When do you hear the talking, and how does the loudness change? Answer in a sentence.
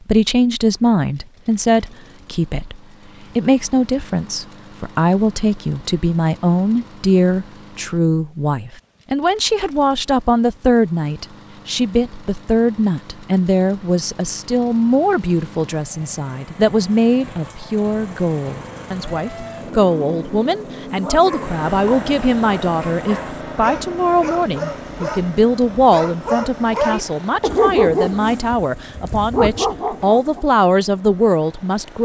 You can hear the talking from 0.1 to 32.0 s, at a steady volume.